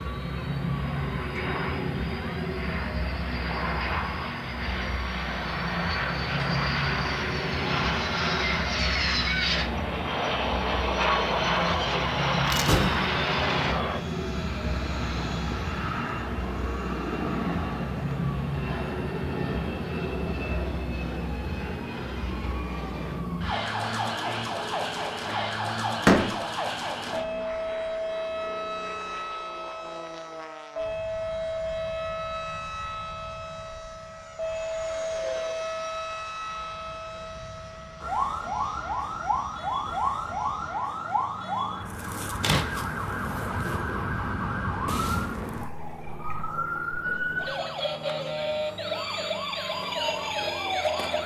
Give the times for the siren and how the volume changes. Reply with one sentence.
The siren can be heard from 0.0 to 51.2 s, at a steady volume.